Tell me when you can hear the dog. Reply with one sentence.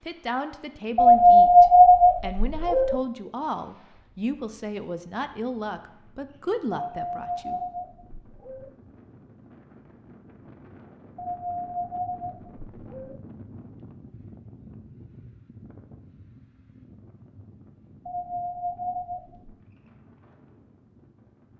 You can hear the dog from 0.9 to 3.0 s, from 6.9 to 8.7 s, from 11.2 to 13.2 s and from 18.1 to 19.6 s.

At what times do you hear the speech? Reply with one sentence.
The speech can be heard from 0.0 to 7.6 s.